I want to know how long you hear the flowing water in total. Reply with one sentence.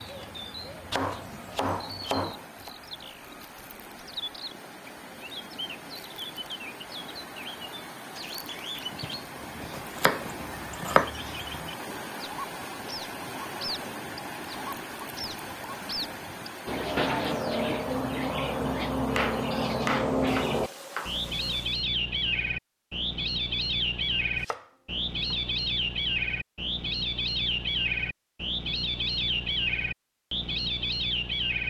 You can hear the flowing water for 22 seconds altogether.